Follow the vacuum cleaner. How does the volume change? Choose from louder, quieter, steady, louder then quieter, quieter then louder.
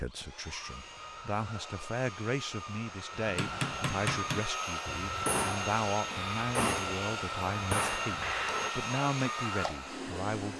louder.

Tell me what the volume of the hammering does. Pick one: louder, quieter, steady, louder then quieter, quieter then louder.
quieter then louder.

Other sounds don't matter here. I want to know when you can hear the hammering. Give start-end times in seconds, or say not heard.
3.3-8.7.